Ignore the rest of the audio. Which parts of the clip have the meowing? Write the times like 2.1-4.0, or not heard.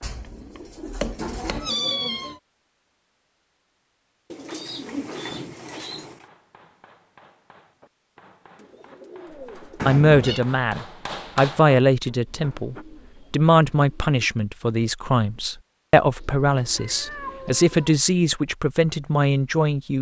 1.1-2.4, 9.8-10.4, 16.6-18.1.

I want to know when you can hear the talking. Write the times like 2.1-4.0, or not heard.
9.8-19.9.